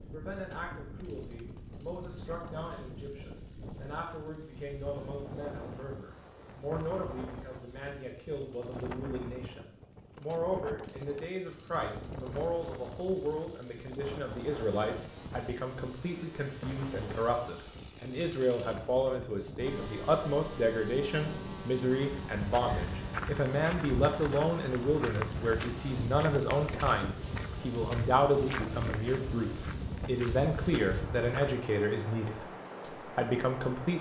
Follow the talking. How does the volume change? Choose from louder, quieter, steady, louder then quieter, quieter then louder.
louder.